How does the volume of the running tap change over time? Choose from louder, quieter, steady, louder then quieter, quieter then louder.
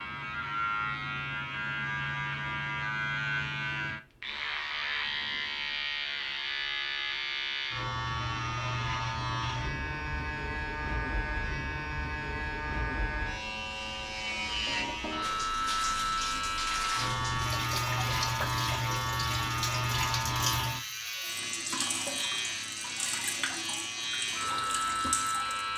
steady.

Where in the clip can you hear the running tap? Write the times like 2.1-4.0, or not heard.
15.2-25.7.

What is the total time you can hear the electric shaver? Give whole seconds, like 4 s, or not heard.
26 s.